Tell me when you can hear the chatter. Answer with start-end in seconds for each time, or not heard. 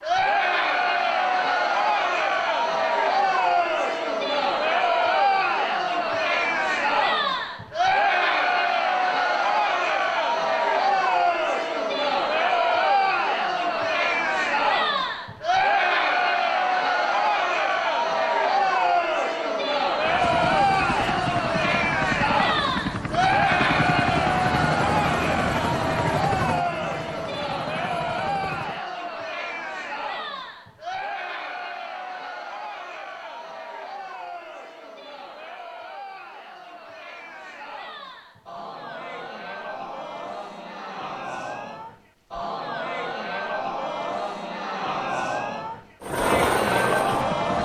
0.0-47.6.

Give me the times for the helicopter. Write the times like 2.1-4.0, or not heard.
20.0-28.8, 46.0-47.6.